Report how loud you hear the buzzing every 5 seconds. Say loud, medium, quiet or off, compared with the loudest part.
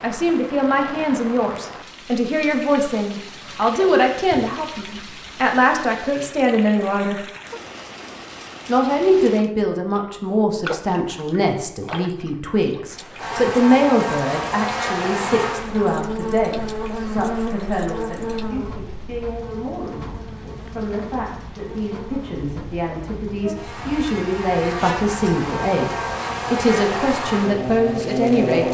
off, off, loud, loud, medium, loud.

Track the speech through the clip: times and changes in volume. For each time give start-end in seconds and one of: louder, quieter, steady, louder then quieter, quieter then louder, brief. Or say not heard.
0.0-7.2 steady
8.7-28.7 quieter then louder.